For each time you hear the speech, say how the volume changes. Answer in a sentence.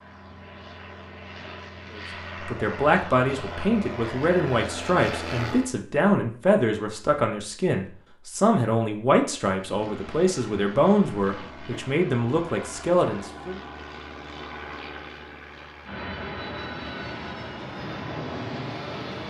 The speech can be heard from 1.9 to 13.6 s, at a steady volume.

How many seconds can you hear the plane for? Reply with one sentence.
You can hear the plane for 15 seconds altogether.